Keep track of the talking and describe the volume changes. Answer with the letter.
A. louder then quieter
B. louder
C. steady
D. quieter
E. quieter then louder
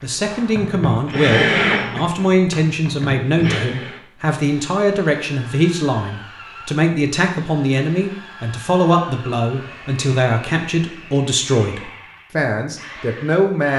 C.